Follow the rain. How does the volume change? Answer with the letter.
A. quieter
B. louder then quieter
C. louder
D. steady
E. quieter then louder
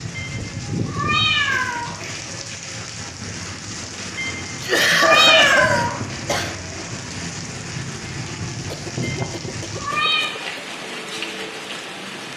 D.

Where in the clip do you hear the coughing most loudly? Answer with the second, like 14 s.
5 s.